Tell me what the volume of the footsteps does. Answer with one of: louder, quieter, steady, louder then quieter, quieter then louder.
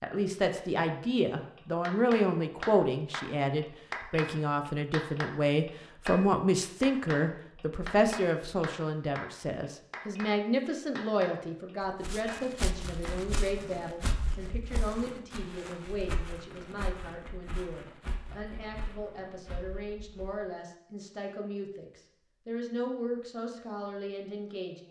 quieter.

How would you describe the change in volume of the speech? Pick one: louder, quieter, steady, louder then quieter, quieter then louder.
quieter.